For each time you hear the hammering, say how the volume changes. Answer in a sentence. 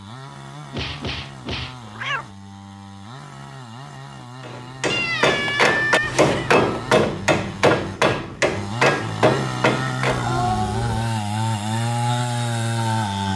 The hammering can be heard from 4.5 to 10.2 s, at a steady volume.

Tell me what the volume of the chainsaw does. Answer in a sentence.
The loudness of the chainsaw goes up.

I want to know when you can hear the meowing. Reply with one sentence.
You can hear the meowing from 0.7 to 2.3 s, from 4.9 to 6.5 s and from 10.1 to 11.1 s.